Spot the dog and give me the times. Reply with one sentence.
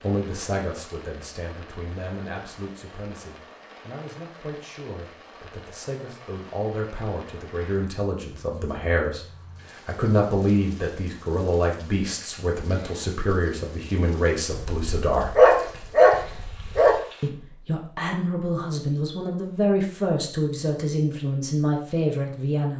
You can hear the dog from 14.5 to 17.0 s.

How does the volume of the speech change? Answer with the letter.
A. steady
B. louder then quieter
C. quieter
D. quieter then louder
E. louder
E.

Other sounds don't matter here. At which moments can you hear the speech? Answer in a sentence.
You can hear the speech from 0.0 to 15.4 s and from 17.2 to 22.7 s.